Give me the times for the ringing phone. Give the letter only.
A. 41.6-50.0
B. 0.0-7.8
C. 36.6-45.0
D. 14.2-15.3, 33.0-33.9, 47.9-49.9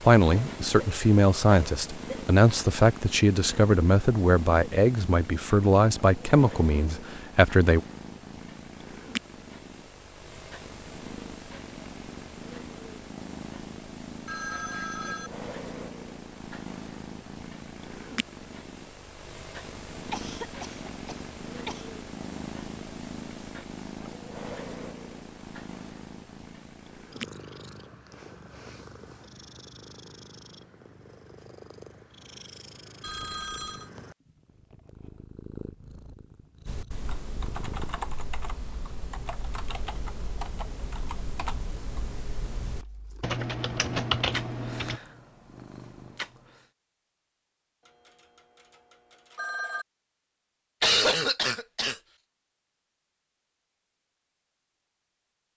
D.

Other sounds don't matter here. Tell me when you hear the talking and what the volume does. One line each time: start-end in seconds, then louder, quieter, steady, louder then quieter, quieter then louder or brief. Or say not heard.
0.0-7.8 steady.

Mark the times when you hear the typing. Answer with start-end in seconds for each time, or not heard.
36.6-45.0.